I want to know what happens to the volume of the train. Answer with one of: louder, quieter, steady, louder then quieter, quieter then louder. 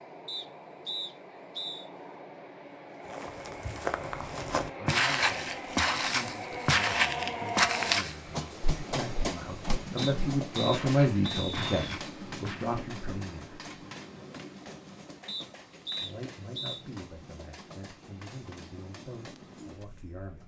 louder then quieter.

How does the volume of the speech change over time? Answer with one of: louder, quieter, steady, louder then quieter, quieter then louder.
louder then quieter.